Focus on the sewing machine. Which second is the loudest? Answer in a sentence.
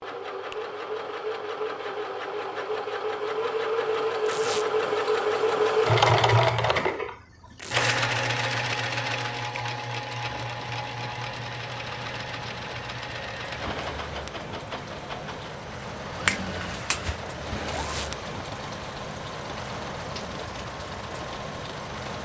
The volume of the sewing machine peaks at 6 seconds.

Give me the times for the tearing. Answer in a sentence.
You can hear the tearing from 4.2 to 4.7 s, from 7.5 to 8.0 s and from 17.7 to 18.1 s.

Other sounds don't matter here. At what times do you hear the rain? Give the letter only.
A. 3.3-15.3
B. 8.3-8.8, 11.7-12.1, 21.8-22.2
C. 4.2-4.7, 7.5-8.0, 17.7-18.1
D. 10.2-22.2
D.